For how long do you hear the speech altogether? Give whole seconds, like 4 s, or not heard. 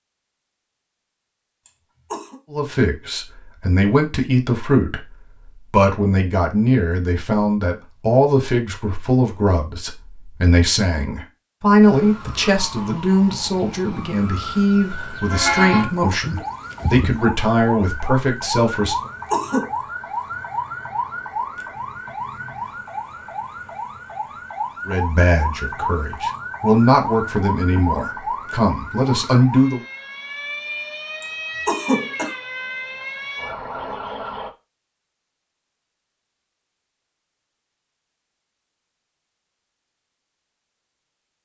21 s.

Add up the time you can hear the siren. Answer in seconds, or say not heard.
23 s.